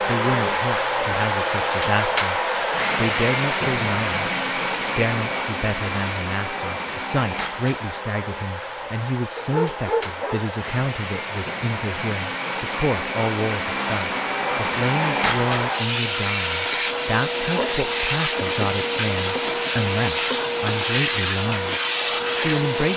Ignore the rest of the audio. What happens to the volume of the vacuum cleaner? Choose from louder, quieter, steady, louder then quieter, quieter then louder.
quieter then louder.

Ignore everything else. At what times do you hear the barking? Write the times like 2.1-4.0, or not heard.
9.3-10.5.